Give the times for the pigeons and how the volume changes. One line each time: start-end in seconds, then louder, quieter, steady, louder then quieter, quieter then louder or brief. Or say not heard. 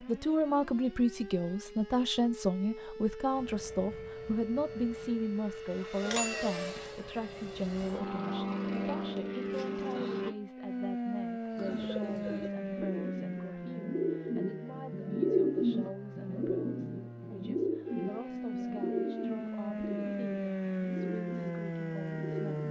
11.5-22.6 louder then quieter.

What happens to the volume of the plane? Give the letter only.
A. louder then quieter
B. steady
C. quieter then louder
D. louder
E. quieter
D.